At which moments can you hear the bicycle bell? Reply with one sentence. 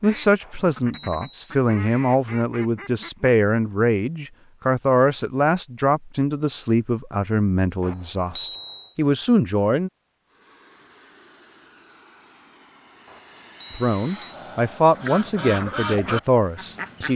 The bicycle bell can be heard from 0.4 to 1.5 s, from 7.8 to 8.9 s and from 13.1 to 14.2 s.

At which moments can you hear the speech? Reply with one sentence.
The speech can be heard from 0.0 to 9.9 s and from 13.7 to 17.1 s.